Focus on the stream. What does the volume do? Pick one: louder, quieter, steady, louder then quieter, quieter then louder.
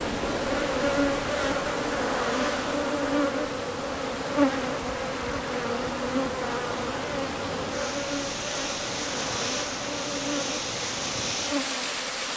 louder.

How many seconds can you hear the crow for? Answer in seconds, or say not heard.
not heard.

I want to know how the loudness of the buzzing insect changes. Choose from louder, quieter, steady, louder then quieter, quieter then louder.
quieter.